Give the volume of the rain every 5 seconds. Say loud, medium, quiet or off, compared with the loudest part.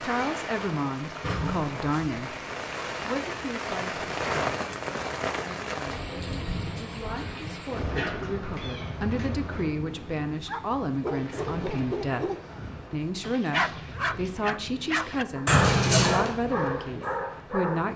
loud, loud, medium, medium.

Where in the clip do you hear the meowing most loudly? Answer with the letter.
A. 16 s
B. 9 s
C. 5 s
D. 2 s
A.